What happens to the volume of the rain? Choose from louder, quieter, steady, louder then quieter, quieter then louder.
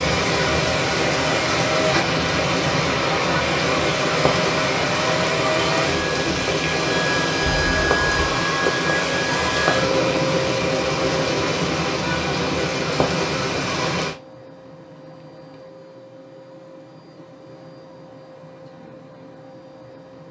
steady.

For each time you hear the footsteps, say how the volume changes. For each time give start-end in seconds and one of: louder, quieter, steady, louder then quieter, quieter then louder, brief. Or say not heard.
not heard.